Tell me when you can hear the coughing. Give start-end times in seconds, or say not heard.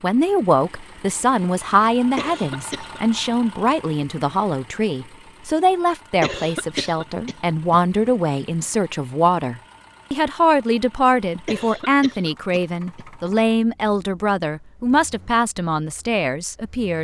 2.1-3.0, 6.2-8.1, 11.4-13.3.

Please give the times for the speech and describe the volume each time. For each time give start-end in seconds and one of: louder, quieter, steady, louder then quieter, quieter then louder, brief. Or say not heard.
0.0-16.9 steady.